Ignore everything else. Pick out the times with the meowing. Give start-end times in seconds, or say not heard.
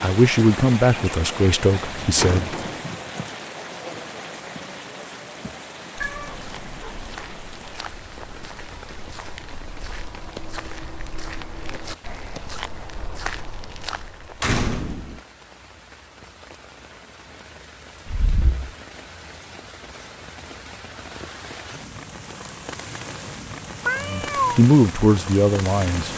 6.0-7.3, 23.9-24.6.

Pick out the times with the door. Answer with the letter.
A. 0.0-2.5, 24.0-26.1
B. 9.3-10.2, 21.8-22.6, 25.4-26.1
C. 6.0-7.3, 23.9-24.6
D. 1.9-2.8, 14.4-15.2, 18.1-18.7
D.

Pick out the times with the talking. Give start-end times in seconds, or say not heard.
0.0-2.5, 24.0-26.1.